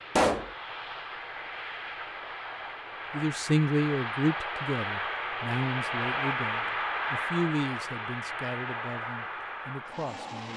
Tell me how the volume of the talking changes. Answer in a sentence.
The loudness of the talking goes down.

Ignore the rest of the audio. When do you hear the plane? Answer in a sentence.
You can hear the plane from 0.0 to 10.5 s.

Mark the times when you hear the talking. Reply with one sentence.
You can hear the talking from 3.1 to 10.5 s.